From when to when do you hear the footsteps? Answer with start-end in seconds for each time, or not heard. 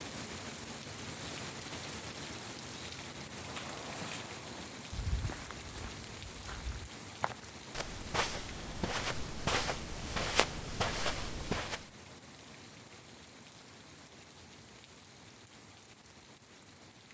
3.4-11.8.